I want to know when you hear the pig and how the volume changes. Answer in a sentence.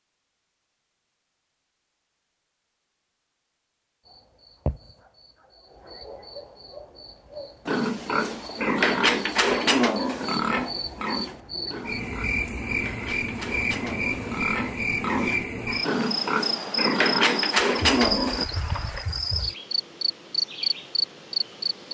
You can hear the pig from 7.7 to 18.4 s, getting quieter then louder.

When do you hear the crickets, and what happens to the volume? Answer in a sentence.
You can hear the crickets from 4.0 to 21.9 s, getting louder.